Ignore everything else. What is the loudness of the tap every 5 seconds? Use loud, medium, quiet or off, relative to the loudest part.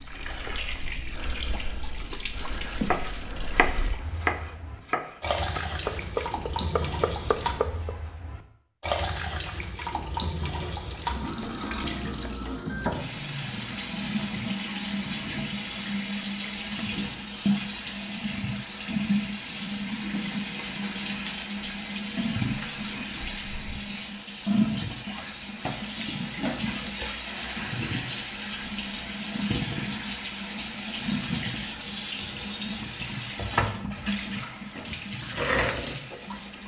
medium, loud, loud, loud, loud, loud, loud, loud.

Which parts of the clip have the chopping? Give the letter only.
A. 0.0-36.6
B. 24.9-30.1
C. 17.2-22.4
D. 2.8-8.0
D.